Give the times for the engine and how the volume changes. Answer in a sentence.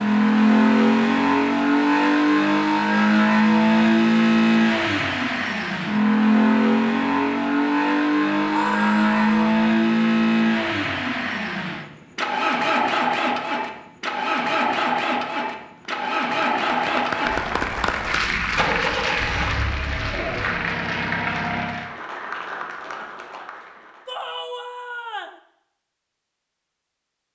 The engine can be heard from 0.0 to 21.9 s, getting quieter.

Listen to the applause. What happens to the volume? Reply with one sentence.
The volume of the applause goes down.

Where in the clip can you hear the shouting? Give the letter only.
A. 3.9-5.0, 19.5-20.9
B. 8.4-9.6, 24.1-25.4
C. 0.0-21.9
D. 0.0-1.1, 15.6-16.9
B.